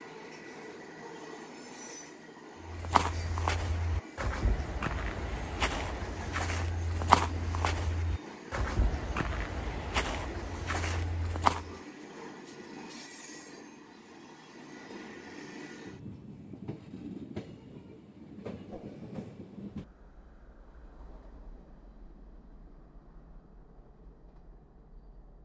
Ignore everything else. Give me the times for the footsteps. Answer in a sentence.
The footsteps can be heard from 2.6 to 11.8 s.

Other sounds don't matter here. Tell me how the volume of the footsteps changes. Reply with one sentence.
The loudness of the footsteps goes up, then down.